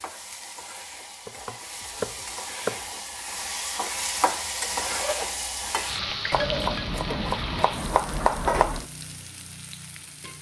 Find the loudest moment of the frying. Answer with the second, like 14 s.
5 s.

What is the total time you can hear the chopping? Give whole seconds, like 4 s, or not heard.
4 s.